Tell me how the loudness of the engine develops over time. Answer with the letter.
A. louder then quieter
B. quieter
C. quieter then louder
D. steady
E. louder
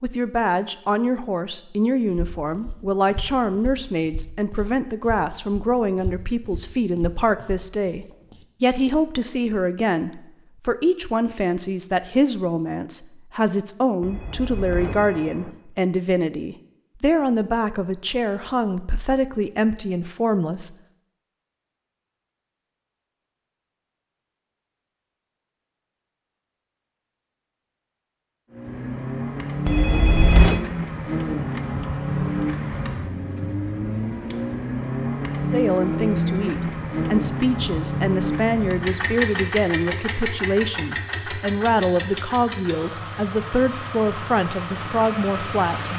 B.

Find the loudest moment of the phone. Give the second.
30 s.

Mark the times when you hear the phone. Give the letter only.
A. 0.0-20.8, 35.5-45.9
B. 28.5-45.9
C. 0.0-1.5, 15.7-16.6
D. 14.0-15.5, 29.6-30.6
D.